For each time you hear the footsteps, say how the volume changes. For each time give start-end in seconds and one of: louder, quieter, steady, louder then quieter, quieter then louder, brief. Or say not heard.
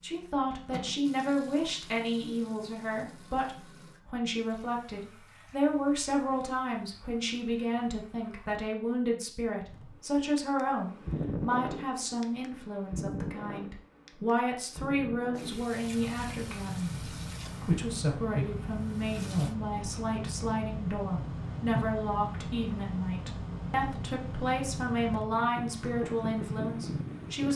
not heard.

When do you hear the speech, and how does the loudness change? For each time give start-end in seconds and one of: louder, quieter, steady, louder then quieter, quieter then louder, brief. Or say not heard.
0.0-27.5 steady.